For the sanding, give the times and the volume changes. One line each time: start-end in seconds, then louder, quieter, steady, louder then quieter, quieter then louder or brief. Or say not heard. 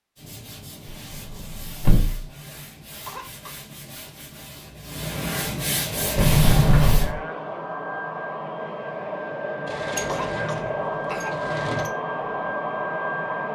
0.1-7.1 louder.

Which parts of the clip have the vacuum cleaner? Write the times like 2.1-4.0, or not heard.
5.9-13.5.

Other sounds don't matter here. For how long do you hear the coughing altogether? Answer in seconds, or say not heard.
2 s.